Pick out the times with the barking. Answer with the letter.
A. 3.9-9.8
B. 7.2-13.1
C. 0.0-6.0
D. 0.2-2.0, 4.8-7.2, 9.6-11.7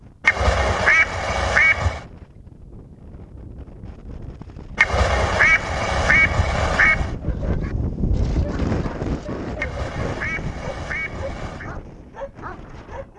B.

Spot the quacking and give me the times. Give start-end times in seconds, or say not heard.
0.2-2.0, 4.8-7.2, 9.6-11.7.